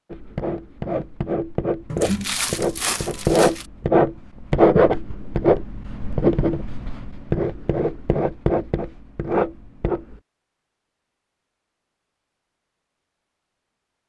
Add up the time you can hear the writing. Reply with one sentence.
You can hear the writing for 10 seconds altogether.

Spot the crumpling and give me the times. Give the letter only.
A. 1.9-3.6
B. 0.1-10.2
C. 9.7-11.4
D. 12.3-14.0
A.